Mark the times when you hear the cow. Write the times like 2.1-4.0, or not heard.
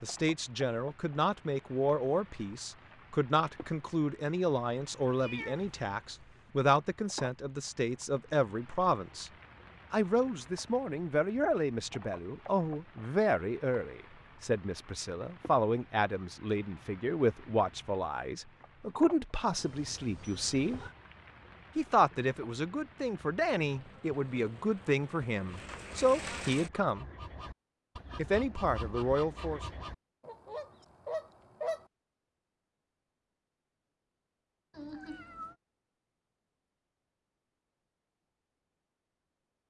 not heard.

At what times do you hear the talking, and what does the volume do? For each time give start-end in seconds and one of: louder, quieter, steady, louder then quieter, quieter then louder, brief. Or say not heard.
0.0-9.3 steady
9.9-20.8 steady
21.8-27.1 louder
28.1-29.6 brief.